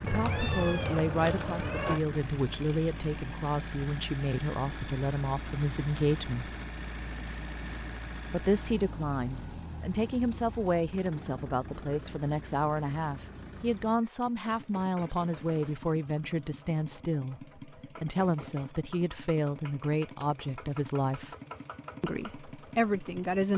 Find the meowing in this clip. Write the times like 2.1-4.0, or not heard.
0.1-2.0.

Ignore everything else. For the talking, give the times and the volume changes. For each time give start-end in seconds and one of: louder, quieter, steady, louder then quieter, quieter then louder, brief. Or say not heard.
0.0-6.5 steady
8.3-21.4 steady
22.0-23.5 brief.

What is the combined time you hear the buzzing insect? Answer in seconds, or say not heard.
not heard.